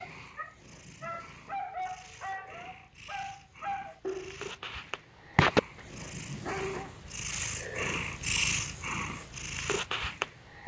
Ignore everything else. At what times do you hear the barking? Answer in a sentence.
You can hear the barking from 0.0 to 7.0 s.